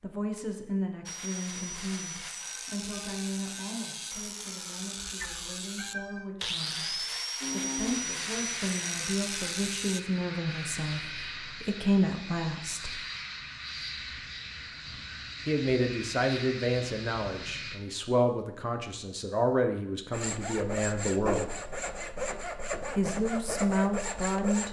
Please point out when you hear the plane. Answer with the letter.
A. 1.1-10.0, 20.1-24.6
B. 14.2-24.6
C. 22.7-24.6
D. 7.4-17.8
D.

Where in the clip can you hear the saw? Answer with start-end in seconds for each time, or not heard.
1.1-10.0, 20.1-24.6.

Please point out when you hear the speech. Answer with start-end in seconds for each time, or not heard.
0.0-12.9, 15.4-21.5, 22.9-24.6.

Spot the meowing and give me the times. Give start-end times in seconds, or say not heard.
5.0-7.0.